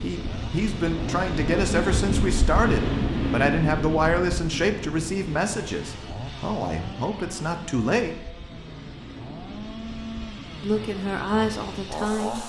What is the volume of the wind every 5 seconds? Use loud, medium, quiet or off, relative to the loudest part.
loud, quiet, quiet.